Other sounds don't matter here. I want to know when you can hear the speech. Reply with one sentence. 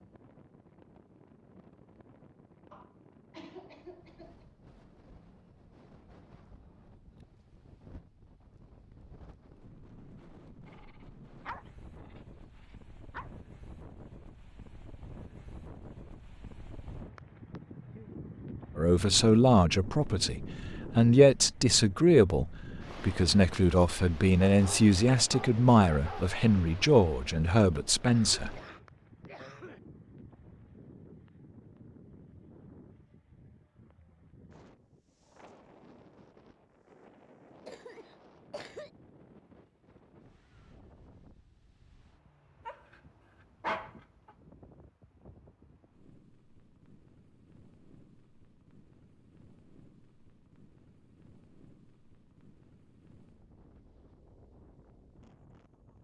The speech can be heard from 18.8 to 28.6 s.